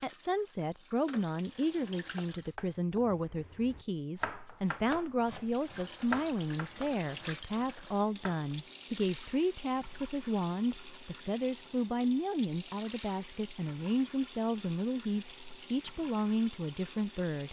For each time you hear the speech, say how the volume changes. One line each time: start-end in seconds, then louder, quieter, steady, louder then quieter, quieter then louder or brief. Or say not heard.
0.0-17.4 steady.